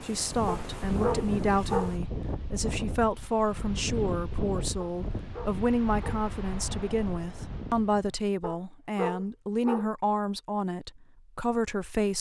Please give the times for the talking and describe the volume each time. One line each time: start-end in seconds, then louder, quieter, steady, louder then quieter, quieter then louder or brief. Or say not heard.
0.0-12.1 steady.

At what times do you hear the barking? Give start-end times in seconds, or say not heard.
0.5-1.9, 4.8-6.2, 8.4-9.9.